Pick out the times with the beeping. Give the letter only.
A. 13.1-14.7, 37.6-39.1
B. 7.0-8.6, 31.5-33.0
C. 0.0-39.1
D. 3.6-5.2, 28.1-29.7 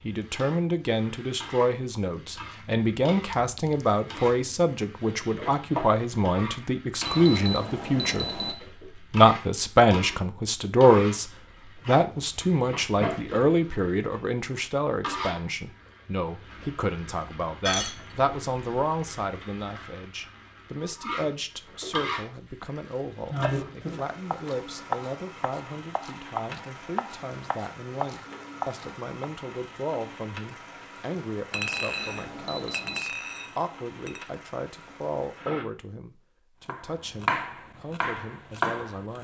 B.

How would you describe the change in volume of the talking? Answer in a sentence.
The loudness of the talking goes down.